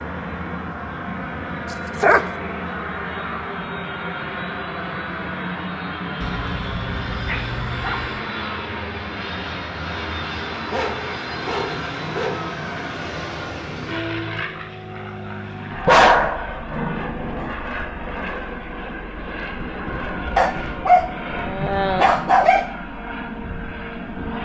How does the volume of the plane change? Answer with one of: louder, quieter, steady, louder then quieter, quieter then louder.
steady.